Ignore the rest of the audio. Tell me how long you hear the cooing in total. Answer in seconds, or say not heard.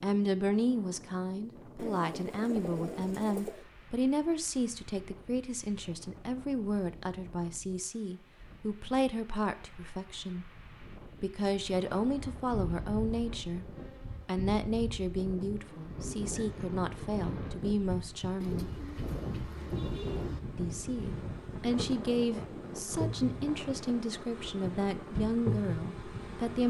4 s.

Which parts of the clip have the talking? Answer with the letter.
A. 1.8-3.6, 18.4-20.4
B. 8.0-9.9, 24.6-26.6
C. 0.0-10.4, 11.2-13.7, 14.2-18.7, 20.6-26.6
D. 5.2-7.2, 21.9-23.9
C.